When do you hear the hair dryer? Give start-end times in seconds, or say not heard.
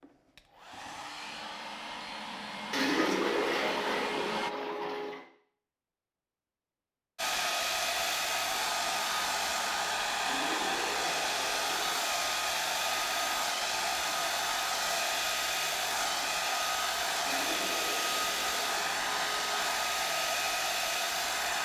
0.0-4.5, 7.2-21.6.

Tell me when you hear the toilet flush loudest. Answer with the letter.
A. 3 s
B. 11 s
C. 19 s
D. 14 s
A.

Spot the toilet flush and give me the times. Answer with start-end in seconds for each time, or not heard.
2.7-5.2, 10.2-12.1, 17.2-19.6.